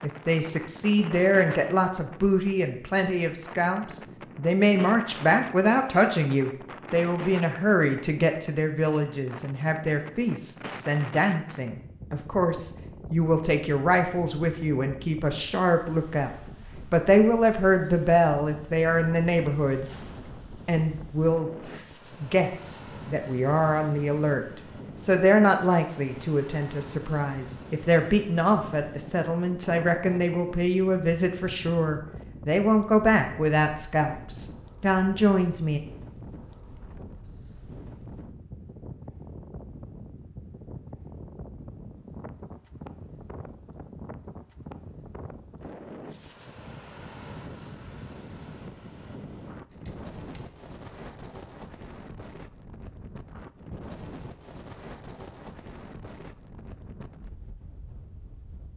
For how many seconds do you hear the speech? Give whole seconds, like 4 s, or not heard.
35 s.